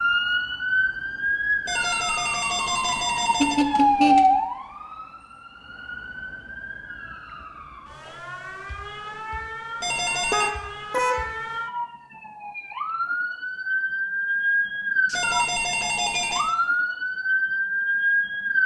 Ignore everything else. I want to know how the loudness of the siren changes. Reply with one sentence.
The volume of the siren goes down, then up.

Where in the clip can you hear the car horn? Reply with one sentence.
You can hear the car horn from 3.4 to 4.4 s and from 10.3 to 11.3 s.